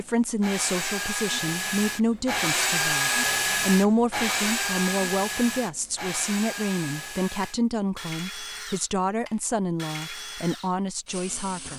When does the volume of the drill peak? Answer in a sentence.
The volume of the drill peaks at 3 seconds.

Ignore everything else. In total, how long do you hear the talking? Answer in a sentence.
You can hear the talking for 12 seconds altogether.